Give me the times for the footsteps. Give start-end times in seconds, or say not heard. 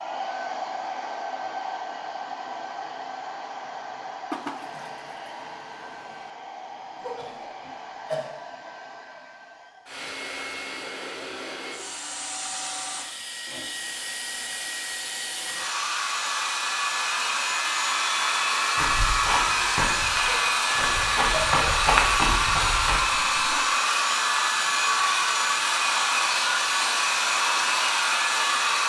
18.8-23.0.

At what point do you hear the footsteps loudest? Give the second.
22 s.